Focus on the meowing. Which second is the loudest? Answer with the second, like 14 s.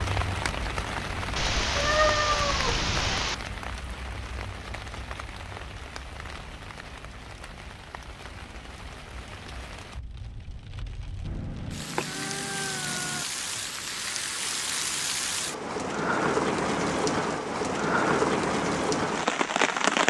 2 s.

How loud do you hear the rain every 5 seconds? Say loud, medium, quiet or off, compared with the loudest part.
medium, quiet, medium, loud.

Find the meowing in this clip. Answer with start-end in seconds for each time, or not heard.
1.4-3.4, 11.2-13.2.